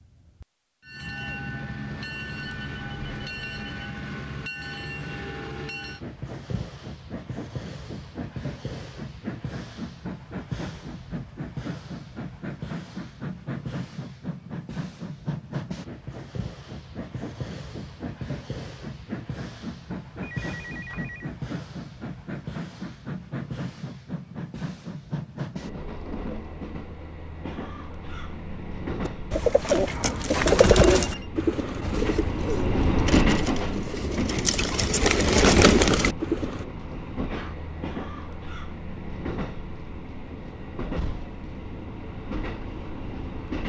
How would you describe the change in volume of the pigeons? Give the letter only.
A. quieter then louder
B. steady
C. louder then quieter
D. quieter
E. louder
A.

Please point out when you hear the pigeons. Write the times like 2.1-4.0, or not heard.
29.1-36.6.